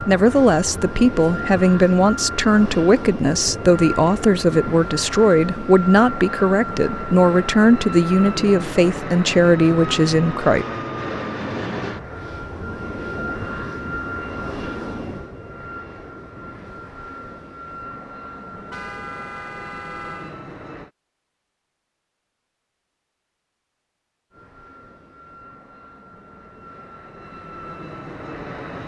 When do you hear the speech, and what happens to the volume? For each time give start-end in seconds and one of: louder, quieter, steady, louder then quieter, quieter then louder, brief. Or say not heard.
0.0-10.7 steady.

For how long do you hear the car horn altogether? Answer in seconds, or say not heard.
2 s.